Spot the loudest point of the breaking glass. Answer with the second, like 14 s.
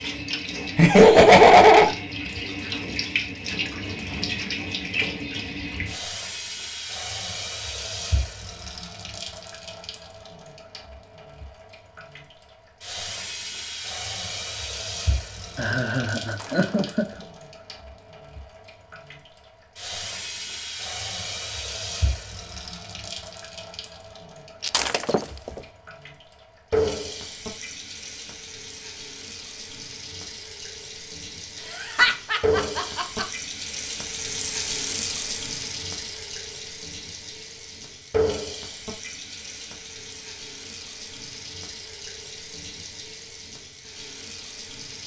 25 s.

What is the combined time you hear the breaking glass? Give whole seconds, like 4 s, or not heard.
2 s.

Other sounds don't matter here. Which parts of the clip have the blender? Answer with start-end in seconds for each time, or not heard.
not heard.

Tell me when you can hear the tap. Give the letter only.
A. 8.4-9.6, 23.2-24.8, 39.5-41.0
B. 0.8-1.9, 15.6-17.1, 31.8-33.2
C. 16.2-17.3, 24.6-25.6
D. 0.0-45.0
D.